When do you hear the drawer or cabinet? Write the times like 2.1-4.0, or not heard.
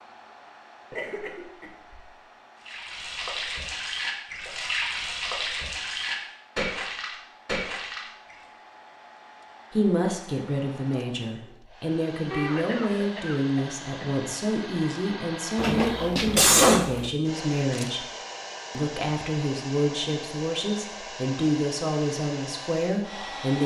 15.6-17.1.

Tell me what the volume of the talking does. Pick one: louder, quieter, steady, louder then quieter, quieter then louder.
steady.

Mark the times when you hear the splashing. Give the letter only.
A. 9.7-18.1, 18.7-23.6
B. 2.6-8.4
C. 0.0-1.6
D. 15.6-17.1
B.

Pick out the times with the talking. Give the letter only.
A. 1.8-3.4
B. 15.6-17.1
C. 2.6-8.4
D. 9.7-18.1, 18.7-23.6
D.